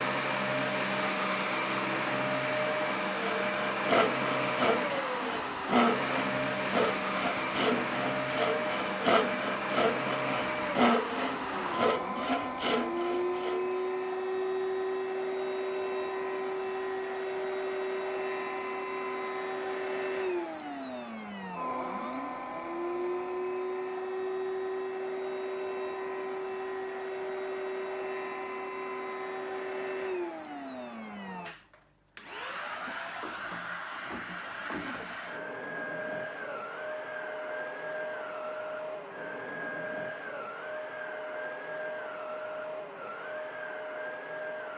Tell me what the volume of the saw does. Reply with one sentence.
The loudness of the saw stays about the same.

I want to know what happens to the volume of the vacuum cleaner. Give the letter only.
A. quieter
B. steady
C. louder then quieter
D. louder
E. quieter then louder
A.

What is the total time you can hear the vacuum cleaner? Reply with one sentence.
You can hear the vacuum cleaner for 45 seconds altogether.